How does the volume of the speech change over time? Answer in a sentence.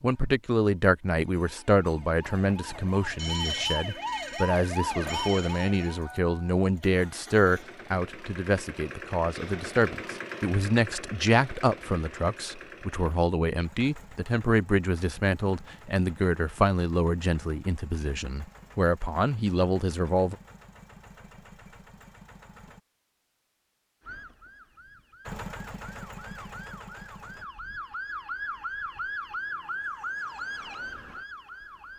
The loudness of the speech stays about the same.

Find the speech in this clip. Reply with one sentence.
You can hear the speech from 0.0 to 20.4 s.